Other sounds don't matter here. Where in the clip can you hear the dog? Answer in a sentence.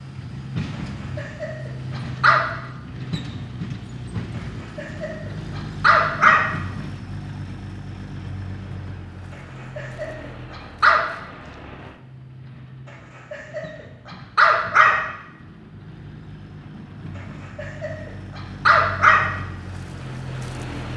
You can hear the dog from 1.1 to 2.4 s, from 4.8 to 6.5 s, from 9.8 to 11.1 s, from 13.3 to 15.1 s and from 17.6 to 19.2 s.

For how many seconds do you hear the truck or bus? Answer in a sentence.
You can hear the truck or bus for 21 seconds altogether.